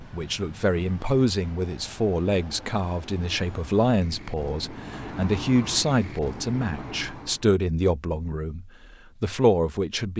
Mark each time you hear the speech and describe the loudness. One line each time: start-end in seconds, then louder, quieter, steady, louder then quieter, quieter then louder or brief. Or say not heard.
0.0-10.1 steady.